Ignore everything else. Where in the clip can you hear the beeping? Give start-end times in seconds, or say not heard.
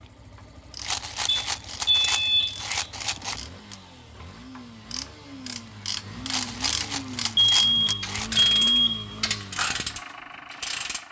1.2-2.6, 7.3-9.2.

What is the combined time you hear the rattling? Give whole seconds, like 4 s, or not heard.
5 s.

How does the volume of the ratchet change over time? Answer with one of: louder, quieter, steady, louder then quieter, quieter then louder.
louder.